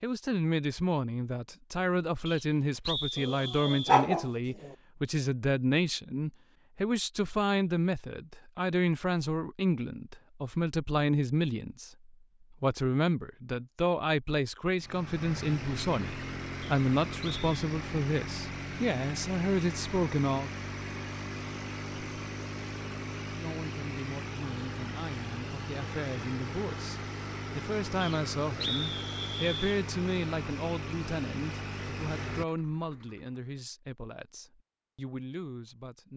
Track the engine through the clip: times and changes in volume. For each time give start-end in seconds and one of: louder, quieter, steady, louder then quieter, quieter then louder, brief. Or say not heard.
14.8-33.4 steady.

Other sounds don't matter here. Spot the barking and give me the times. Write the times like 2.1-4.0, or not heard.
3.1-4.7.